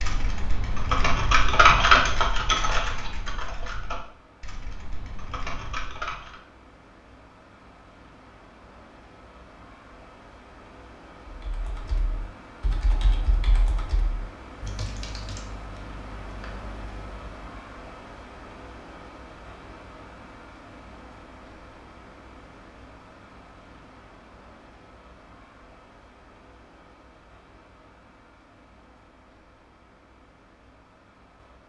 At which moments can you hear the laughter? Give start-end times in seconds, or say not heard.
not heard.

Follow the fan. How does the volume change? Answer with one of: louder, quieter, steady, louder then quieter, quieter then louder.
louder then quieter.